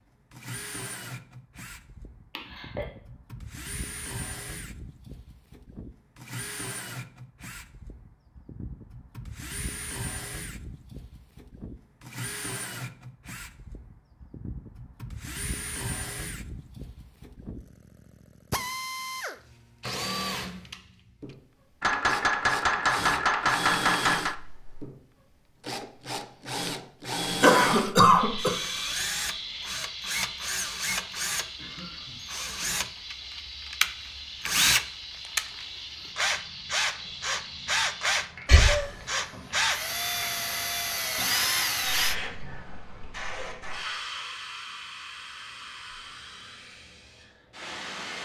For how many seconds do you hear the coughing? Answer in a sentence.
The coughing can be heard for 2 seconds in total.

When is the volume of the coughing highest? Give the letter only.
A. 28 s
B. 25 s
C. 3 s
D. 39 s
A.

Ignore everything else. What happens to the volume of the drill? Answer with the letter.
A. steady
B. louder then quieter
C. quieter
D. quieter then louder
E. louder
E.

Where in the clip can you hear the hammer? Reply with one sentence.
The hammer can be heard from 21.8 to 24.4 s.